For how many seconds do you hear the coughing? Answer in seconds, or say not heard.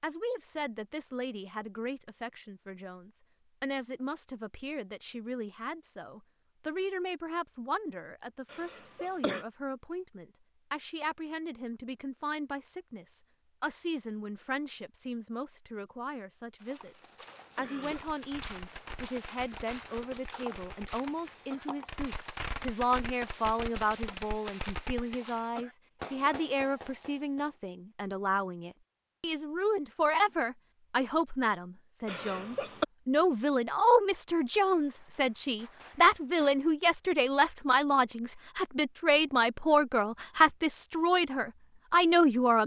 3 s.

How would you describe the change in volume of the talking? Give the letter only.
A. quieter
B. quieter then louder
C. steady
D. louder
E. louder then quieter
D.